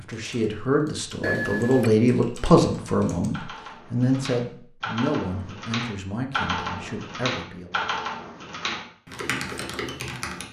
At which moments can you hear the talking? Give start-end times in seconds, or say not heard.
0.0-7.8.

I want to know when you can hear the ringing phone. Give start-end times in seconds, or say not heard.
1.2-1.9.